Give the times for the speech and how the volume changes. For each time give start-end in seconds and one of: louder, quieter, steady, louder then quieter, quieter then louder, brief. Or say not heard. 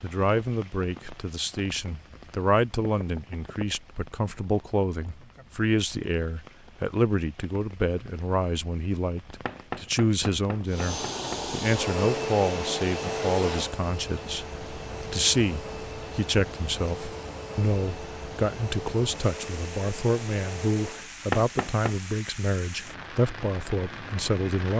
0.0-24.7 steady.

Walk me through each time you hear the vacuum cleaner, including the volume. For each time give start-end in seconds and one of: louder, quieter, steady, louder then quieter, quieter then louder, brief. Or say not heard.
10.7-21.1 quieter.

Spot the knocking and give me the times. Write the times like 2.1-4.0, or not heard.
2.8-3.6, 9.4-11.4, 21.3-21.9.